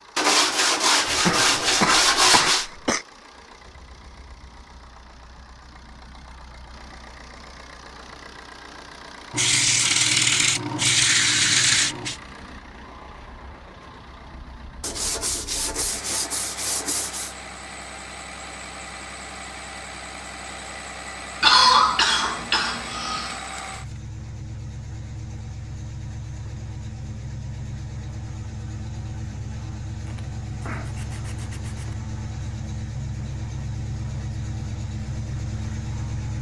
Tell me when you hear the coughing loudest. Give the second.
22 s.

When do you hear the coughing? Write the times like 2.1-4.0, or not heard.
1.1-3.0, 21.4-23.4.